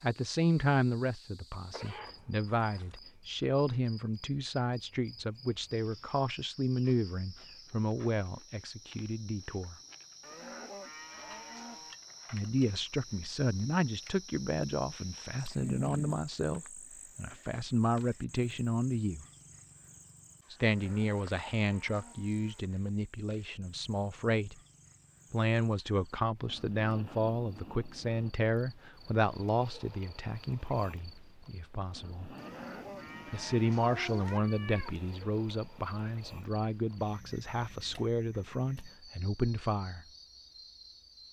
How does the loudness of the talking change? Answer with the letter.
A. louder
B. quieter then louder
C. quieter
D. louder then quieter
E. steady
E.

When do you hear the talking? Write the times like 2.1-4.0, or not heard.
0.0-9.8, 12.3-19.2, 20.5-24.6, 25.3-32.3, 33.3-40.0.